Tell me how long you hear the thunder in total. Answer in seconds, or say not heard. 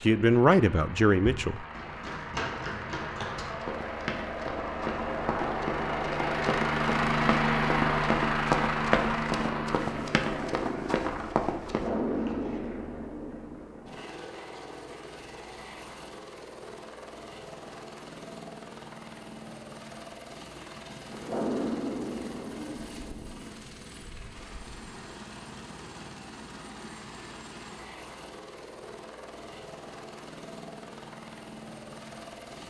5 s.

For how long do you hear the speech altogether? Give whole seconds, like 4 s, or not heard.
2 s.